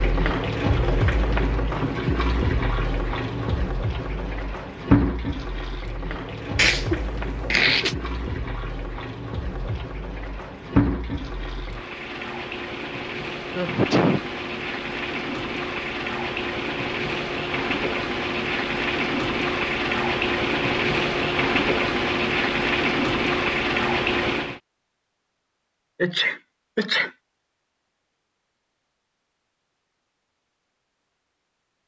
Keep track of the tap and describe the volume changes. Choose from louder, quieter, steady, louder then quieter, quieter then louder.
quieter then louder.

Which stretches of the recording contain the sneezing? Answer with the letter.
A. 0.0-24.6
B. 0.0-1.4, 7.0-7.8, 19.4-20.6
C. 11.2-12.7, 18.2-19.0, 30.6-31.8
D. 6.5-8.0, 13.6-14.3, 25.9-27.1
D.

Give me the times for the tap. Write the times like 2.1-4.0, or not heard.
0.0-24.6.